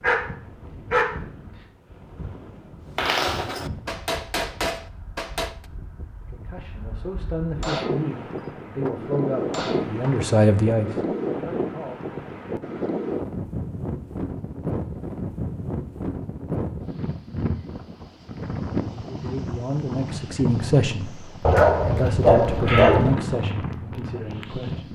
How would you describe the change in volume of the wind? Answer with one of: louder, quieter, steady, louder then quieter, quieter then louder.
louder.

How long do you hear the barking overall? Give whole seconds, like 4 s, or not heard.
3 s.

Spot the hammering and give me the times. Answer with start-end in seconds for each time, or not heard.
3.0-5.5, 7.6-10.3.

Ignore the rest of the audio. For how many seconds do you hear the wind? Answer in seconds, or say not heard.
25 s.